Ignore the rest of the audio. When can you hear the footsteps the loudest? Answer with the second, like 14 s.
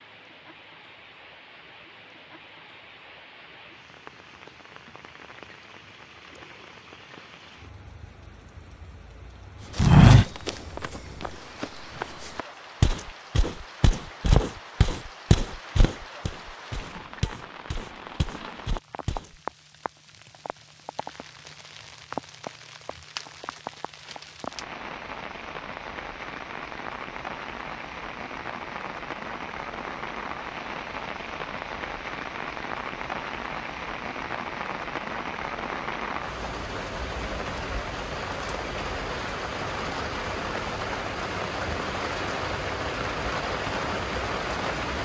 10 s.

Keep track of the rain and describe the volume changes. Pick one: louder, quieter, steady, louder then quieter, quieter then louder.
louder.